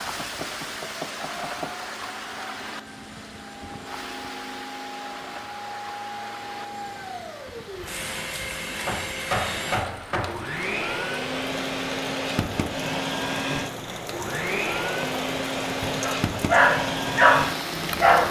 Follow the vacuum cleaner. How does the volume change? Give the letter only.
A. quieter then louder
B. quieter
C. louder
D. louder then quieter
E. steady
C.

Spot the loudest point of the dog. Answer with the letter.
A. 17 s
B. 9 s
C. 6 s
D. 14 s
A.